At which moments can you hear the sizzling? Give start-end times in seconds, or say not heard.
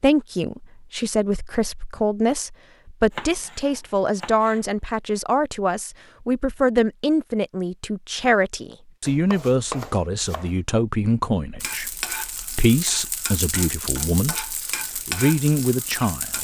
11.6-16.3.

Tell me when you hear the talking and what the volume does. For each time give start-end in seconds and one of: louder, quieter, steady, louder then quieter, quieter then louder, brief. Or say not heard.
0.0-16.3 steady.